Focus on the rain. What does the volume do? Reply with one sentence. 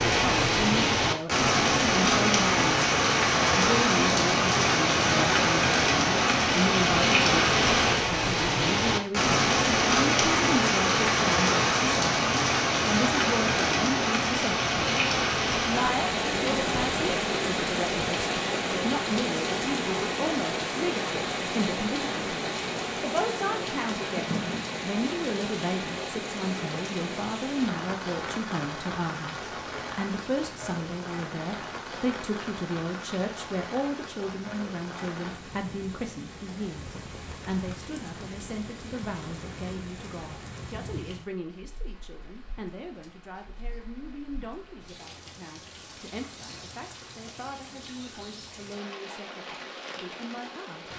The loudness of the rain goes down.